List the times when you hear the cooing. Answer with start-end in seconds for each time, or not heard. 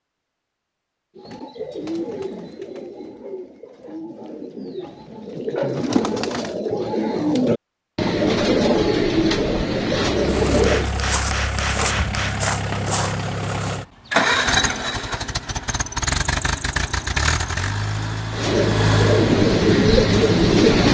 1.1-10.9, 18.4-20.8.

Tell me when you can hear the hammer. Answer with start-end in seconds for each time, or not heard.
10.6-12.8.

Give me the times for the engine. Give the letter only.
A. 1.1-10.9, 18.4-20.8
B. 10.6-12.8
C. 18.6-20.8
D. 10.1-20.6
D.